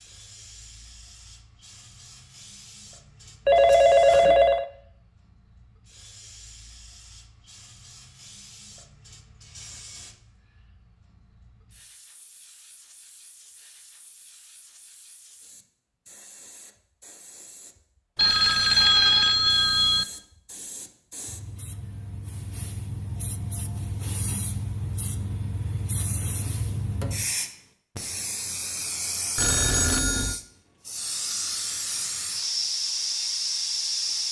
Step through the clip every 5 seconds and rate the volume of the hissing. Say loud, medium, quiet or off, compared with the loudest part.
quiet, quiet, quiet, quiet, medium, loud, loud.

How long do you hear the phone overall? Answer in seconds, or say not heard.
4 s.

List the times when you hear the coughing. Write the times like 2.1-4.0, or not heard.
not heard.